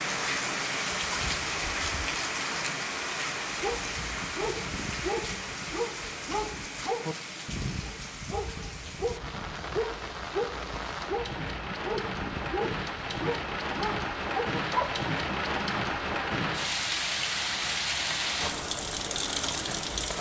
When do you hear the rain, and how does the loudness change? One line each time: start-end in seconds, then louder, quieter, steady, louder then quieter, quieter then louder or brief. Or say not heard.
0.0-20.1 quieter then louder.